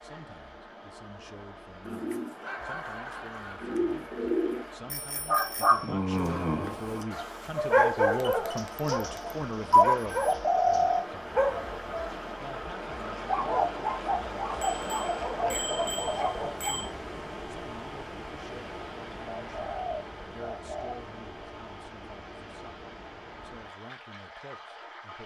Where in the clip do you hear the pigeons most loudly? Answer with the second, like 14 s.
11 s.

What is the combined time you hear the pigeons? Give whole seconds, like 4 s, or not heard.
7 s.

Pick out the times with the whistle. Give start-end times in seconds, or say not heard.
not heard.